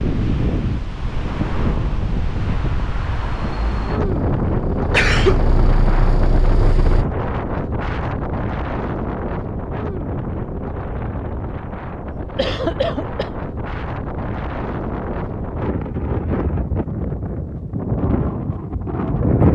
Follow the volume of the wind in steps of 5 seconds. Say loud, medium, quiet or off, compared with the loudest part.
loud, loud, medium, loud.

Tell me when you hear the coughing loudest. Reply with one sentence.
The loudest moment of the coughing is at 5 seconds.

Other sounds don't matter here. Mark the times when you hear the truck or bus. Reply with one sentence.
The truck or bus can be heard from 4.0 to 7.0 s.